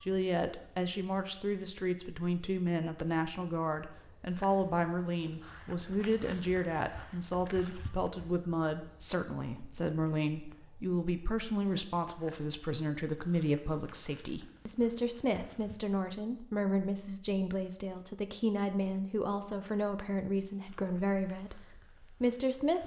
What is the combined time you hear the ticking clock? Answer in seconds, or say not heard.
not heard.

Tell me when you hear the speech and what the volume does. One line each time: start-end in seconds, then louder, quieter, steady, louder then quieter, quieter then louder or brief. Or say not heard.
0.0-22.8 steady.